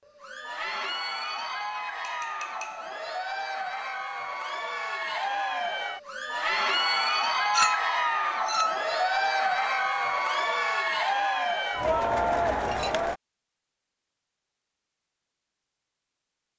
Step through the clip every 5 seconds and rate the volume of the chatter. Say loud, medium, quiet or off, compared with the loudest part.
medium, loud, loud, off.